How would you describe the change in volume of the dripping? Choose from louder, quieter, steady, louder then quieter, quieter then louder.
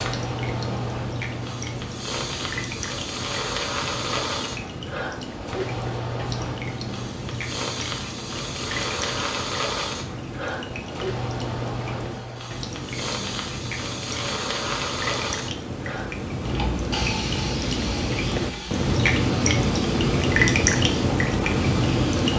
louder.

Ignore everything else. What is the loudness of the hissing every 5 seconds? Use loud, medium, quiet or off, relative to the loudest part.
loud, loud, loud, loud, medium.